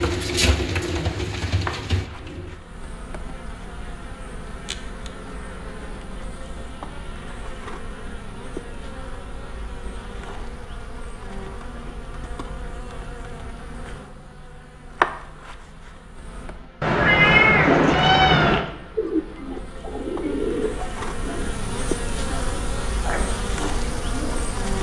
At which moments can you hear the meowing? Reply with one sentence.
You can hear the meowing from 16.8 to 18.6 s.